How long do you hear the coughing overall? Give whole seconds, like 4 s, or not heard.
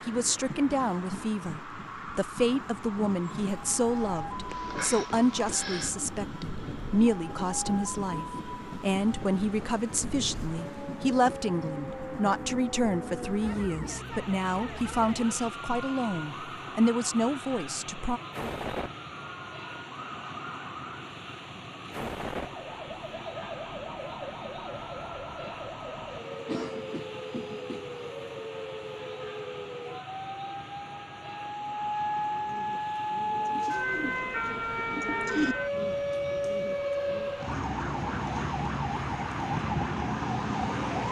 3 s.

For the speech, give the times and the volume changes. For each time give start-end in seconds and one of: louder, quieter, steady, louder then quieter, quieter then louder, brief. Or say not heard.
0.1-18.2 steady.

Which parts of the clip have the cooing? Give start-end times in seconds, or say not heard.
32.1-37.3.